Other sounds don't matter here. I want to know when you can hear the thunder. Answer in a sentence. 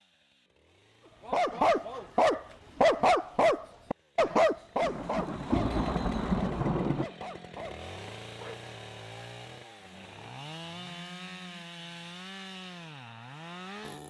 You can hear the thunder from 4.8 to 7.0 s.